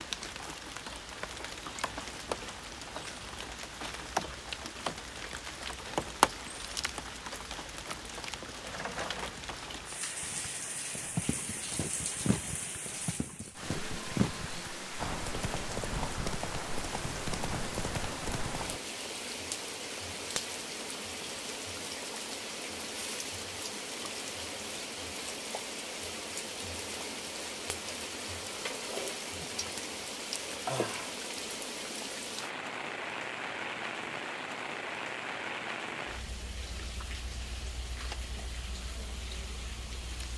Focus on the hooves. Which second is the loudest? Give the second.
14 s.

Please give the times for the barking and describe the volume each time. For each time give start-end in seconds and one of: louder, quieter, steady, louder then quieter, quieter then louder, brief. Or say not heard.
not heard.